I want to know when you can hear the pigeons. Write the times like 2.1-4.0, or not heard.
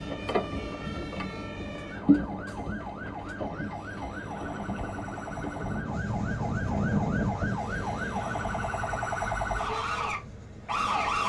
not heard.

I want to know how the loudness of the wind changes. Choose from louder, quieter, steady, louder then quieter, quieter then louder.
louder then quieter.